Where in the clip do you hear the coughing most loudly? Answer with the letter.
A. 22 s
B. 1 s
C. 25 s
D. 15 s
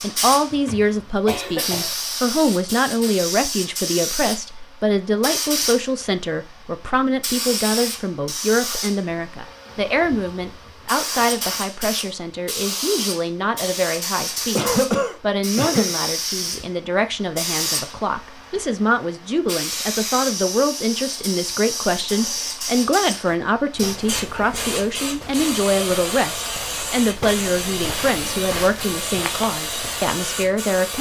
D.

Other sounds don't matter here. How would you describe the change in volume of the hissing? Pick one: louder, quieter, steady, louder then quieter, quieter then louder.
steady.